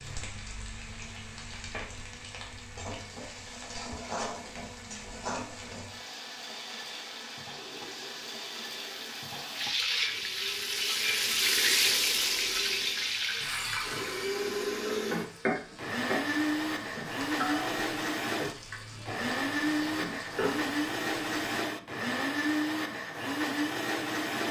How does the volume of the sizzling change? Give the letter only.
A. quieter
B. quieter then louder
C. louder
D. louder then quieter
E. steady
D.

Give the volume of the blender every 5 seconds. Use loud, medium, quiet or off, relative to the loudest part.
quiet, quiet, medium, loud, loud.